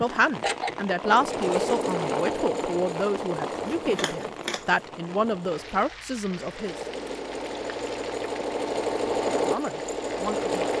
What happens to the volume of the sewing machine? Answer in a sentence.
The volume of the sewing machine goes down, then up.